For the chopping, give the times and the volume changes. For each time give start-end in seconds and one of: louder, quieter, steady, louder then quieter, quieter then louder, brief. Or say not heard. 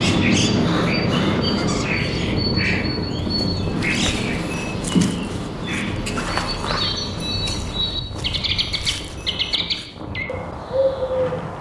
not heard.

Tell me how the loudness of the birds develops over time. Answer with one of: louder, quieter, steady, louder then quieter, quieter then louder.
steady.